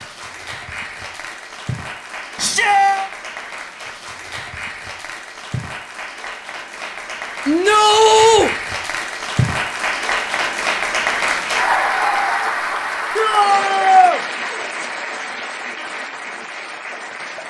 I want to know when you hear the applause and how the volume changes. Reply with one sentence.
The applause can be heard from 0.0 to 17.4 s, getting louder then quieter.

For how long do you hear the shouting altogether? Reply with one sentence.
You can hear the shouting for 3 seconds altogether.